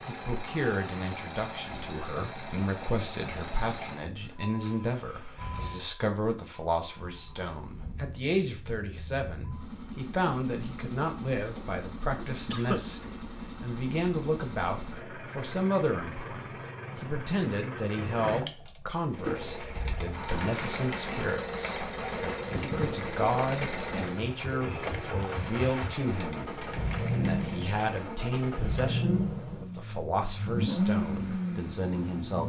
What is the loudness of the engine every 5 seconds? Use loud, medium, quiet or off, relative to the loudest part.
medium, quiet, medium, medium, medium, loud, loud.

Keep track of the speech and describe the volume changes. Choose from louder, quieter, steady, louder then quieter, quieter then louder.
steady.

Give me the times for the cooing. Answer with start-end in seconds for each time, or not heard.
19.0-28.1.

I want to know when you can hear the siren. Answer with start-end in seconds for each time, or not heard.
not heard.